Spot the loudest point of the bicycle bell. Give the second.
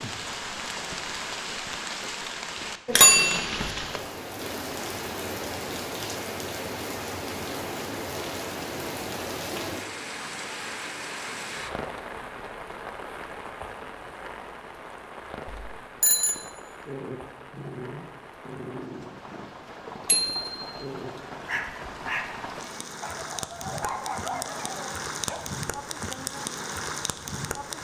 3 s.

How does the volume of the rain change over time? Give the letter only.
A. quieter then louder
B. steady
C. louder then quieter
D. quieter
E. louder
A.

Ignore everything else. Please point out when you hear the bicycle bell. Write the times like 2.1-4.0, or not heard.
2.9-3.7, 15.4-16.4, 20.1-20.6.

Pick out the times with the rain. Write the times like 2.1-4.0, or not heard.
0.0-27.7.